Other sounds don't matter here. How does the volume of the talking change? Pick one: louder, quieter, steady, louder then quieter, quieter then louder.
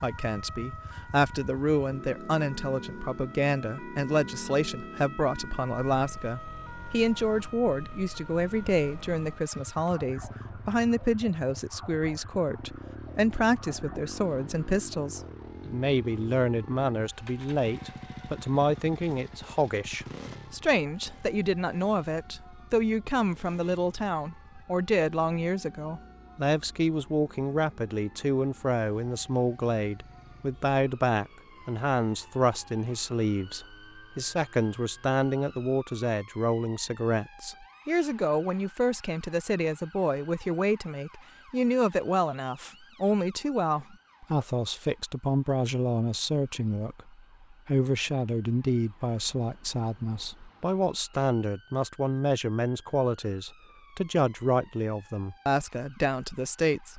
steady.